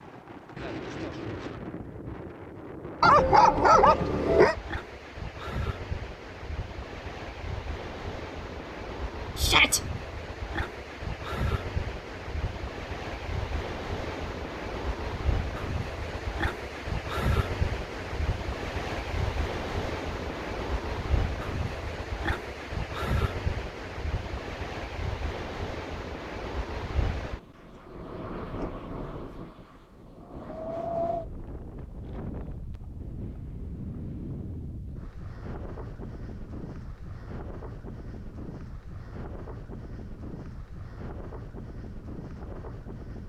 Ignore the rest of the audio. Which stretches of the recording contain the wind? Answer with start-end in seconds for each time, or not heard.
0.0-43.2.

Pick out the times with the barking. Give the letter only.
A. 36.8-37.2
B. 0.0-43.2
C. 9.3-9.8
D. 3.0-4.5
D.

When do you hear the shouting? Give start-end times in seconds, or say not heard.
9.3-9.8.